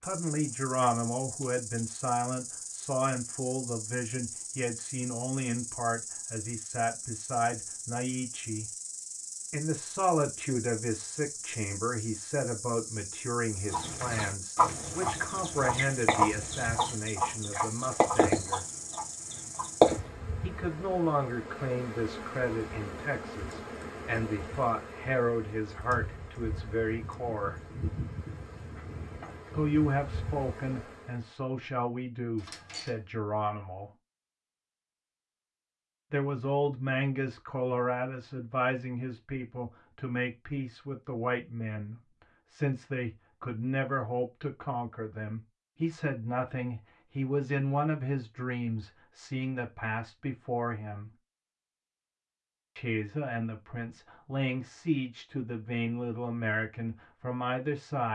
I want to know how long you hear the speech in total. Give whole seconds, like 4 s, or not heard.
50 s.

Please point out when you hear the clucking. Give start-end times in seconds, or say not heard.
13.7-20.0.